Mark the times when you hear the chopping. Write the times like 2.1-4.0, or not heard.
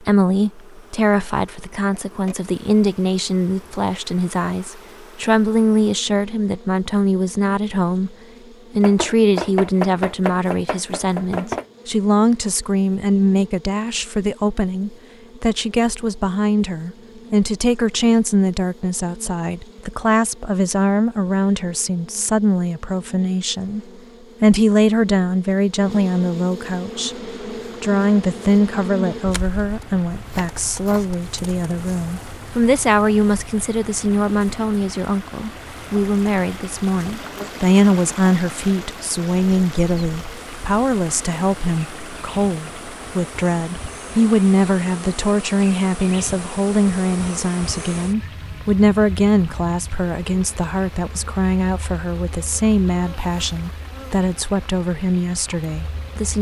8.8-11.7, 30.2-31.1.